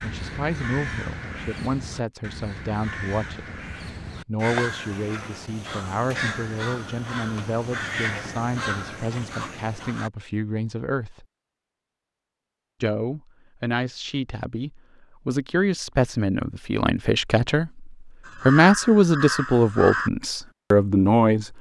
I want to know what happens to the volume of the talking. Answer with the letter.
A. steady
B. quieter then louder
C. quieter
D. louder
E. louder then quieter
D.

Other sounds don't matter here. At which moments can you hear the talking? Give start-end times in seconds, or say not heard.
0.0-3.5, 4.2-11.2, 12.8-21.5.